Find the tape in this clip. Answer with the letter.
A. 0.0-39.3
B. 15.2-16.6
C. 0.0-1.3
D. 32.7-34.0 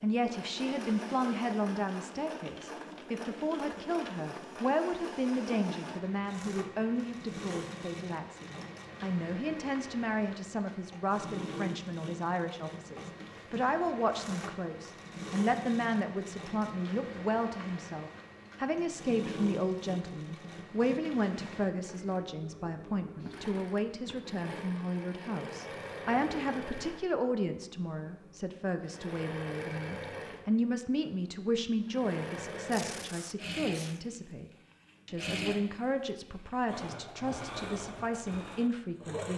D.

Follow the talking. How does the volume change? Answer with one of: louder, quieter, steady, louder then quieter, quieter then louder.
steady.